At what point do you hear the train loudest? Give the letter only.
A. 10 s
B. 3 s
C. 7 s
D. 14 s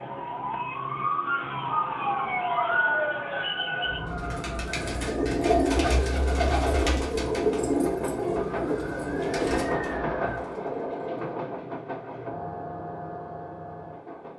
A.